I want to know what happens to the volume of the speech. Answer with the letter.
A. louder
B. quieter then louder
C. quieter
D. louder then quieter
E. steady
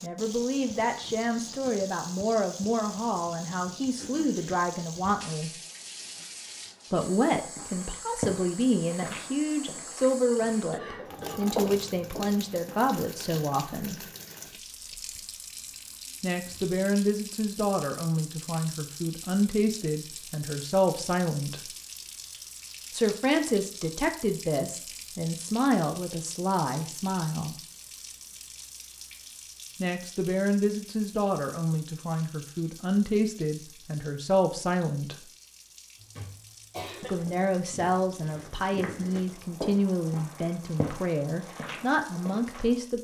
E.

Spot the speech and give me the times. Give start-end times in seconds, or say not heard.
0.0-5.5, 6.9-14.1, 16.2-21.6, 22.9-27.6, 29.8-35.2, 37.0-42.9.